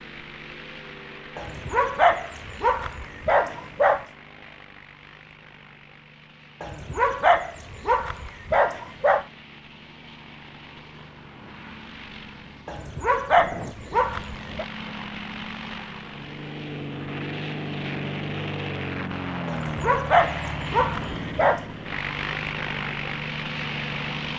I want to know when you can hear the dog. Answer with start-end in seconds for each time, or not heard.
1.4-4.0, 6.6-9.2, 12.7-14.7, 19.4-21.6.